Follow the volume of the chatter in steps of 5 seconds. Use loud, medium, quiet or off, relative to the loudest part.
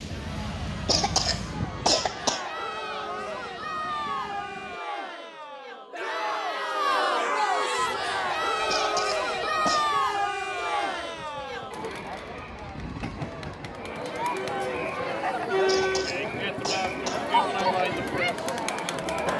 medium, loud, medium, loud.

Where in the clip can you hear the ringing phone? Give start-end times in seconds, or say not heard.
8.7-9.8.